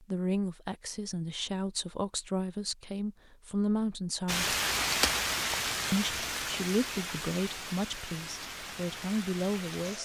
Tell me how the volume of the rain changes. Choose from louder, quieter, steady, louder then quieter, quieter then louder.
quieter.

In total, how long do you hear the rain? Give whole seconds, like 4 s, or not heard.
6 s.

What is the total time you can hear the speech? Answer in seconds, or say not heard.
9 s.